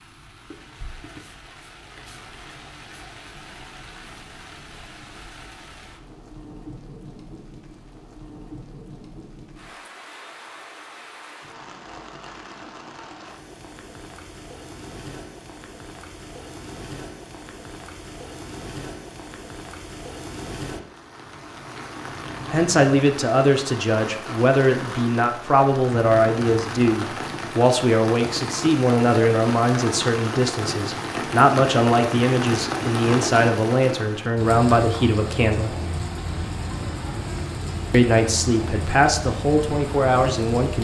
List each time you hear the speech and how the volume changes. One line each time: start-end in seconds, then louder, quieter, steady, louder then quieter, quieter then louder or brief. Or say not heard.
22.5-35.8 steady
37.9-40.7 brief.